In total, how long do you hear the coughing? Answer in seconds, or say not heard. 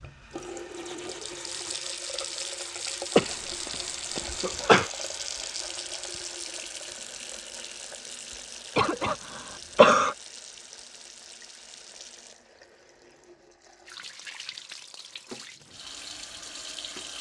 3 s.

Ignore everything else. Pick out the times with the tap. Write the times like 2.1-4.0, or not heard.
0.0-17.1.